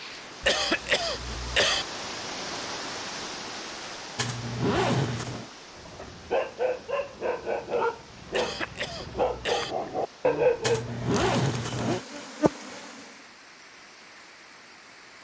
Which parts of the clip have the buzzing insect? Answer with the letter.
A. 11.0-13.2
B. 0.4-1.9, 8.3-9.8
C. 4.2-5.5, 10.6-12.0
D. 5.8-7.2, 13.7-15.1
A.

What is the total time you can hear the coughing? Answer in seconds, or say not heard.
3 s.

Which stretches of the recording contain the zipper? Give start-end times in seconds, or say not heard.
4.2-5.5, 10.6-12.0.